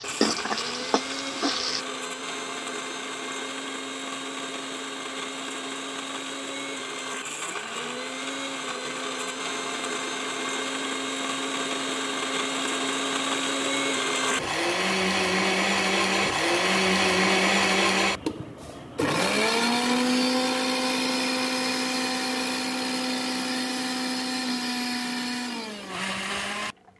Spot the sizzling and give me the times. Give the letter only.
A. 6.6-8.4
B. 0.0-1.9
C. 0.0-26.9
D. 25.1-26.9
B.